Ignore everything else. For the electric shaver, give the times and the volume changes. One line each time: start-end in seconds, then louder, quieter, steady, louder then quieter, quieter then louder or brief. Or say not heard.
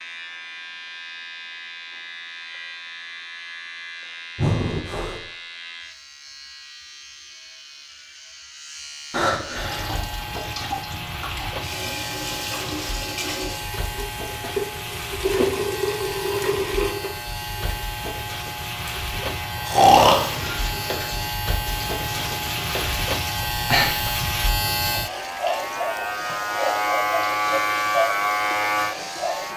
0.0-29.5 louder.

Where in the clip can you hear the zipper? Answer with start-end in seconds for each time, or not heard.
not heard.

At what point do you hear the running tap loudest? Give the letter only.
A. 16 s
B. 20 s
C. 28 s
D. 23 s
A.